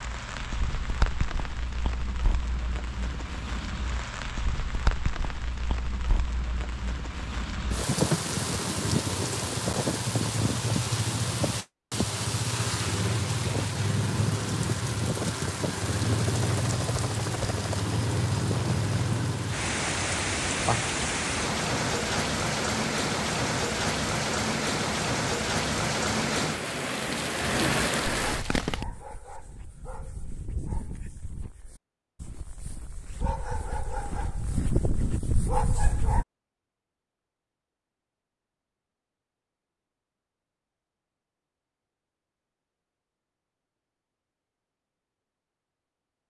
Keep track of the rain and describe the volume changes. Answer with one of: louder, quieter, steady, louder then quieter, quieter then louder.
louder.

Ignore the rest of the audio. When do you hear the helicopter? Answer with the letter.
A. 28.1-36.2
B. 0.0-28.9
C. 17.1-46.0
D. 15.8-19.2
D.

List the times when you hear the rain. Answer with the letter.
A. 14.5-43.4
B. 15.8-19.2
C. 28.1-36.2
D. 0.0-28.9
D.